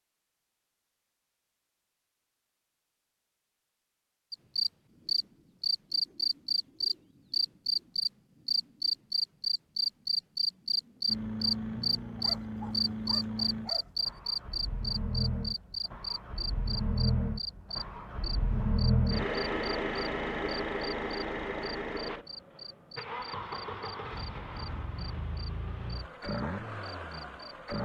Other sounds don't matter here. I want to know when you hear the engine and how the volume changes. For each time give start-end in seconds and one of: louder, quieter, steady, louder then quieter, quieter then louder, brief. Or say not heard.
11.1-27.8 louder then quieter.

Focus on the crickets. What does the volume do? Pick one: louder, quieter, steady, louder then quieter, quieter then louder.
quieter.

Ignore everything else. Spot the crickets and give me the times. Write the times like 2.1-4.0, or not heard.
4.3-27.8.